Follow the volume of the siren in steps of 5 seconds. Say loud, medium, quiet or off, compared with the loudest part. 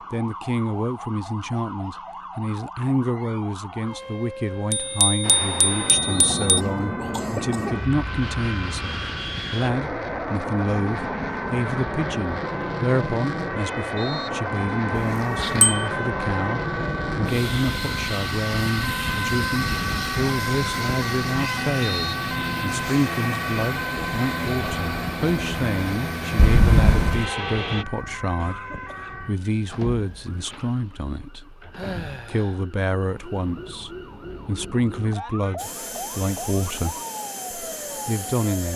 medium, medium, medium, loud, loud, medium, medium, medium.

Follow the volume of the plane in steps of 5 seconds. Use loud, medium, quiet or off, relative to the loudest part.
off, loud, loud, loud, loud, loud, off, medium.